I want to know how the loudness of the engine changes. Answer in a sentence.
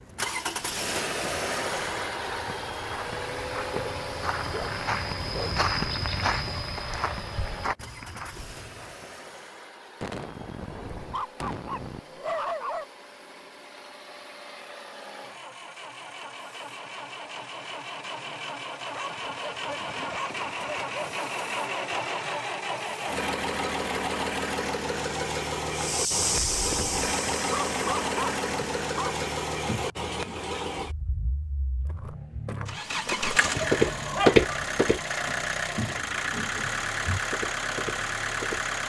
The loudness of the engine goes down, then up.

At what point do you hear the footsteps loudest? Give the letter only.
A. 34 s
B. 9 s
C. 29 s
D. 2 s
A.